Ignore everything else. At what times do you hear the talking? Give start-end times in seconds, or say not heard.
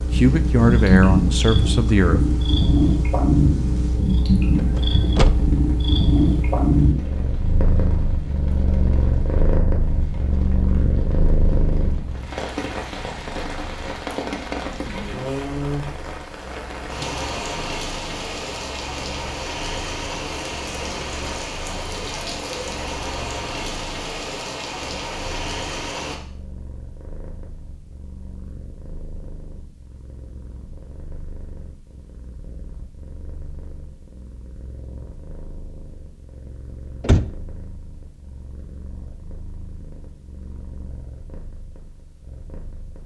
0.0-2.4.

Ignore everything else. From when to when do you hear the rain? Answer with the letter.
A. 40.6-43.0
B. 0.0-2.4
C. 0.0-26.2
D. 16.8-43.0
C.